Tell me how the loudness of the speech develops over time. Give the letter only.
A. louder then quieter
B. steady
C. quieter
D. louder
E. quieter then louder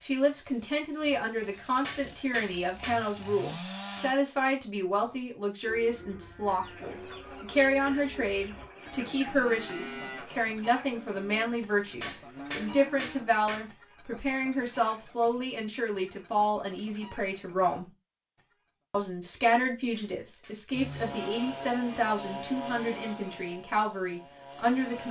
B.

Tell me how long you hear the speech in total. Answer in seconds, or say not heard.
24 s.